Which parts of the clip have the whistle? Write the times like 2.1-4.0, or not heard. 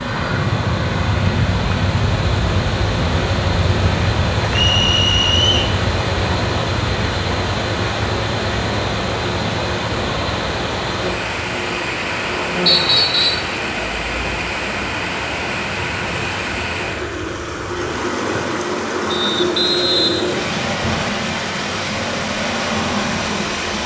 4.5-5.8, 12.7-13.5, 19.1-21.1.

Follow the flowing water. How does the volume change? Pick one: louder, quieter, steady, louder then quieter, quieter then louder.
steady.